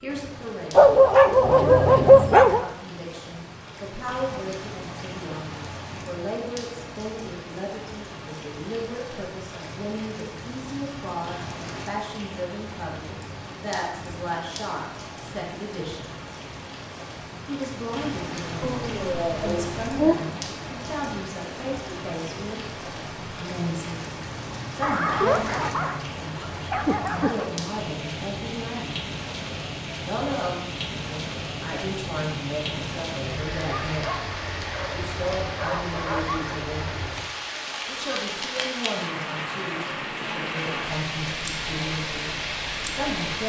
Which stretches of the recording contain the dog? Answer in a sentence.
You can hear the dog from 0.8 to 2.6 s, from 18.6 to 20.1 s, from 24.8 to 27.5 s and from 33.7 to 36.6 s.